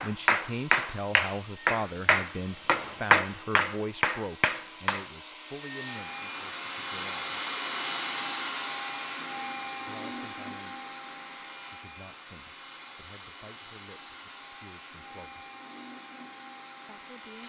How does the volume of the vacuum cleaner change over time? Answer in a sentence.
The volume of the vacuum cleaner goes up, then down.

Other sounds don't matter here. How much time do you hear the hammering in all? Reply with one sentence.
The hammering can be heard for 5 seconds in total.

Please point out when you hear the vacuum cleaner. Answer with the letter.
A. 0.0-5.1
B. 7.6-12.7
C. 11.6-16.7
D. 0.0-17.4
D.